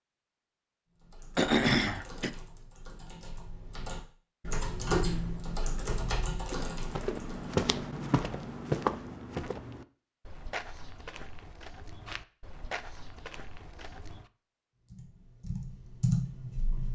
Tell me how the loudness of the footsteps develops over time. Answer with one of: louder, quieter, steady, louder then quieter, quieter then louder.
quieter.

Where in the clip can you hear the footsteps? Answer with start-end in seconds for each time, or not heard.
6.5-14.3.